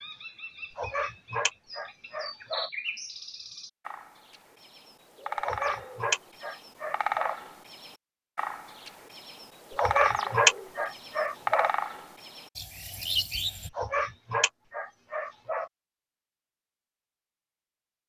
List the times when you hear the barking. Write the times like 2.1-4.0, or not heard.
0.8-2.7, 5.4-7.3, 9.8-11.7, 13.8-15.7.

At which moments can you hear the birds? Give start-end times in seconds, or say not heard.
0.0-13.7.